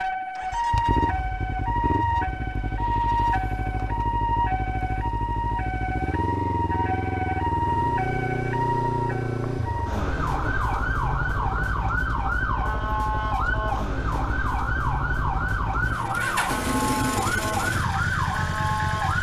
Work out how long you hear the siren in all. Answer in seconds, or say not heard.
19 s.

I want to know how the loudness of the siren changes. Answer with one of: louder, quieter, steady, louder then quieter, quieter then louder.
steady.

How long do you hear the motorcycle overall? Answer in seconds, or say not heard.
19 s.